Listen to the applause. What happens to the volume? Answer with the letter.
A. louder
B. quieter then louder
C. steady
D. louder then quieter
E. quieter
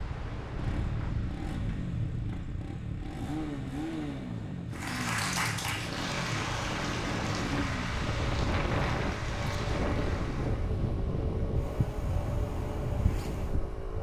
E.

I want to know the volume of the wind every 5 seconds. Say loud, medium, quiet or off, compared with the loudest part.
medium, loud, loud.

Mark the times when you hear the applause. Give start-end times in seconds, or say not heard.
4.7-10.8.